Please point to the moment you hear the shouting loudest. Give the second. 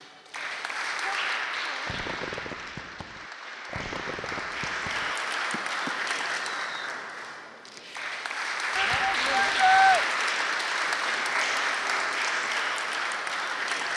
10 s.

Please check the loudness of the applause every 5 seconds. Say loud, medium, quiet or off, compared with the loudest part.
medium, loud, loud.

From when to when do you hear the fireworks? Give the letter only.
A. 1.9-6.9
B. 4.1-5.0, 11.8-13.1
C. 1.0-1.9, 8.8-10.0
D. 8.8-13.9
A.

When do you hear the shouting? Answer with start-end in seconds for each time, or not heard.
1.0-1.9, 8.8-10.0.